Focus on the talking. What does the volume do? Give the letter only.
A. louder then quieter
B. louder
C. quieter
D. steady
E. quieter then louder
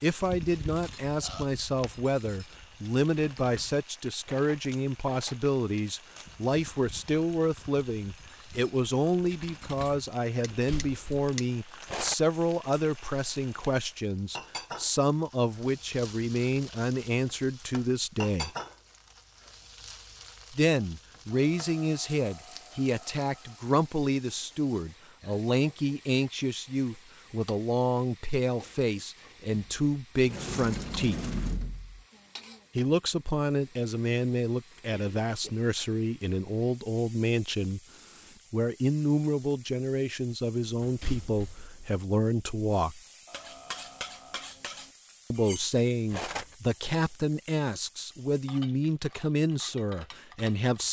D.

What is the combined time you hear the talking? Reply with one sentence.
You can hear the talking for 45 seconds altogether.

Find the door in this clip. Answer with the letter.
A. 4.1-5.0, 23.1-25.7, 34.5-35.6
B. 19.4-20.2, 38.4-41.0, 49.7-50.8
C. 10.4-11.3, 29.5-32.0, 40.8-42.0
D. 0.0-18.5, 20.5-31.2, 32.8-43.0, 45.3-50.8
C.